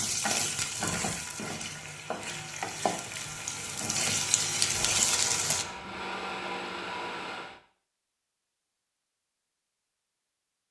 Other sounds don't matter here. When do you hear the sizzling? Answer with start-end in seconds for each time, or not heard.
0.0-5.7.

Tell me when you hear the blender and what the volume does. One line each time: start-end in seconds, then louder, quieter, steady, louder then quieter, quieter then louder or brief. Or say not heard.
0.0-7.6 louder.